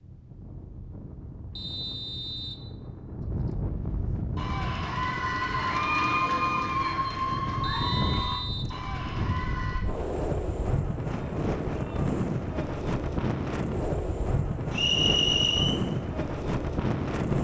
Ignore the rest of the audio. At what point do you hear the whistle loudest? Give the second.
15 s.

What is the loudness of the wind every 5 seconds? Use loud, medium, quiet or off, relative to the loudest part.
medium, medium, loud, loud.